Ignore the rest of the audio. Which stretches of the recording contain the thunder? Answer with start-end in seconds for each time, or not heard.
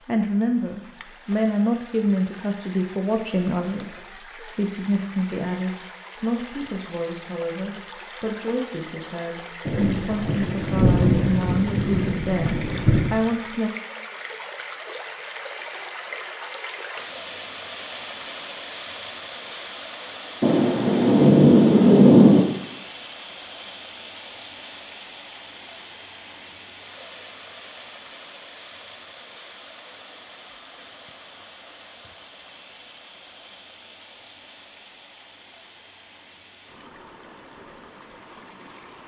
9.7-13.2, 20.4-22.4.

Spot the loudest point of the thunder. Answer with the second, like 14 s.
22 s.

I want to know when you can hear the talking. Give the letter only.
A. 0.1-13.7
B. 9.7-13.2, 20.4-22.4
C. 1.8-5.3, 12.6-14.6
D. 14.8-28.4
A.